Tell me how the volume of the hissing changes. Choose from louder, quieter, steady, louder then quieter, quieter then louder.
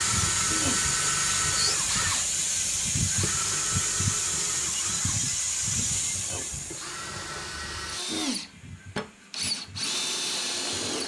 quieter.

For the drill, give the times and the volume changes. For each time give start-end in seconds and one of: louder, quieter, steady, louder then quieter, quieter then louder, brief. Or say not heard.
0.0-11.0 quieter then louder.